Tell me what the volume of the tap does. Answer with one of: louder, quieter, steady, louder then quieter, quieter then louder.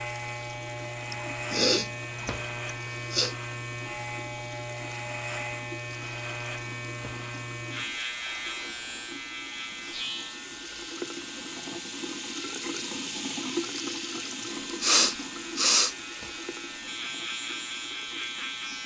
louder then quieter.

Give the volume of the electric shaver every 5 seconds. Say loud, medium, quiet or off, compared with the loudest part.
loud, loud, medium, loud.